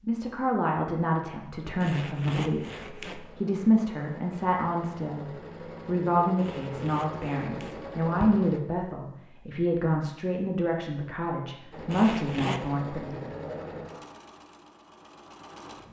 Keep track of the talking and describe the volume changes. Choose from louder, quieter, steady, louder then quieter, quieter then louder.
steady.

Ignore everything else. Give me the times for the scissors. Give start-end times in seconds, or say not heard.
not heard.